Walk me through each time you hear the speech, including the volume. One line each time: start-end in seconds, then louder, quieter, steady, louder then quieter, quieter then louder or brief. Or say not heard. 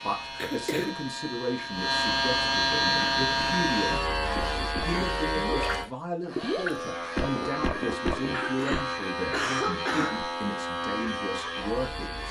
0.0-12.2 steady.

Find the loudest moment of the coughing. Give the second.
10 s.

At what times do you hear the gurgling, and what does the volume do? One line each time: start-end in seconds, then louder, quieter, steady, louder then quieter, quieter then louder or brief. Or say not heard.
2.8-8.8 louder.